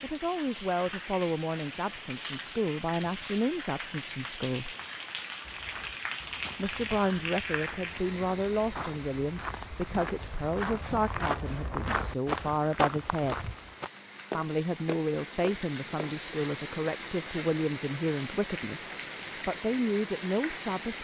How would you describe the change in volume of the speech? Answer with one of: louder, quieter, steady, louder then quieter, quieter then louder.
steady.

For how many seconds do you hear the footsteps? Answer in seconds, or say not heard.
11 s.